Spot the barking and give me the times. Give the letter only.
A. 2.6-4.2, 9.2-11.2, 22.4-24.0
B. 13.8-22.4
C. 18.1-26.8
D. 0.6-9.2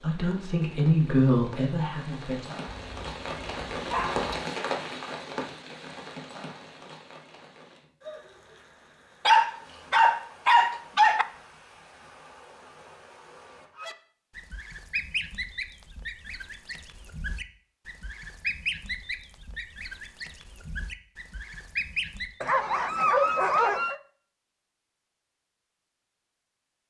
A.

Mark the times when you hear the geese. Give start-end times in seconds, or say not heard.
13.8-22.4.